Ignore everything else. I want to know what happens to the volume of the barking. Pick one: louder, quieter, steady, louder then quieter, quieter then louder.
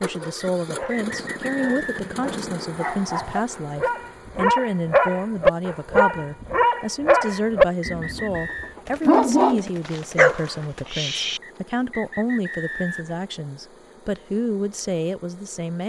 louder.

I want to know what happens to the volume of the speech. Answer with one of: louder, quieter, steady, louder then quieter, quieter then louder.
steady.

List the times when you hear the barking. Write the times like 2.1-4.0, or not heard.
0.1-11.4.